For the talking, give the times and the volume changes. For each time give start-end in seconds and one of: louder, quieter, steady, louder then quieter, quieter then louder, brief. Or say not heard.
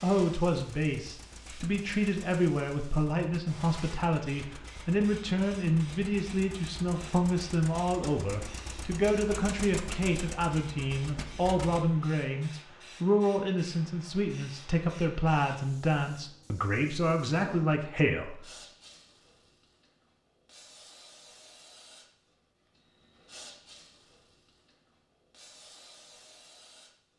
0.0-18.4 steady.